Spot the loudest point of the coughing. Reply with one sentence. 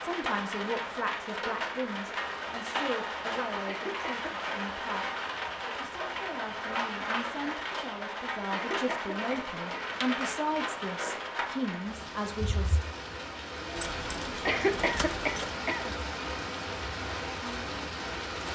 The loudest moment of the coughing is at 15 seconds.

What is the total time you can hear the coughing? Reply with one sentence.
You can hear the coughing for 4 seconds altogether.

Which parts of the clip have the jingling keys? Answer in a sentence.
The jingling keys can be heard from 13.8 to 15.6 s.